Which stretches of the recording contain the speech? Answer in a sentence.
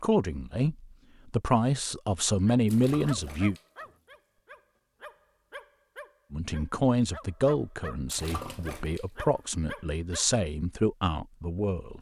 You can hear the speech from 0.0 to 3.5 s and from 6.3 to 11.9 s.